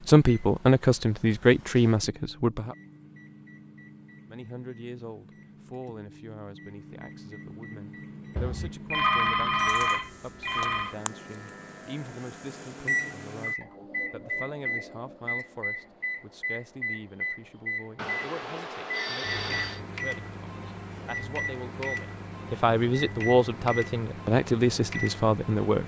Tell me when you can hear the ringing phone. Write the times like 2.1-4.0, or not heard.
8.3-10.9, 17.9-19.8.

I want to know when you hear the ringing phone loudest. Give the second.
9 s.